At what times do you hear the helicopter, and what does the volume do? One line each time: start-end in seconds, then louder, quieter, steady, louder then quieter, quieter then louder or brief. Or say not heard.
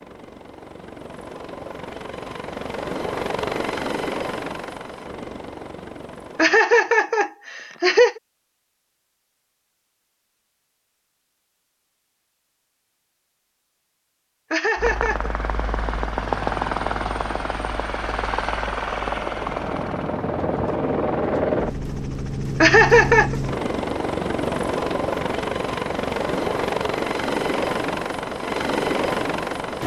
0.0-6.6 louder then quieter
14.8-29.8 steady.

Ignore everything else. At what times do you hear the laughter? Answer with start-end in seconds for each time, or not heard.
6.3-8.2, 14.5-15.3, 22.6-23.4.